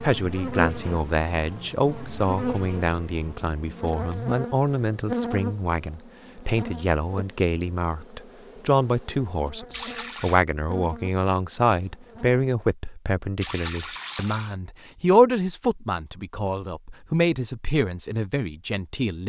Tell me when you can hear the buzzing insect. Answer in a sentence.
The buzzing insect can be heard from 0.0 to 12.4 s.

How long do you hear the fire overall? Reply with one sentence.
You can't hear the fire here.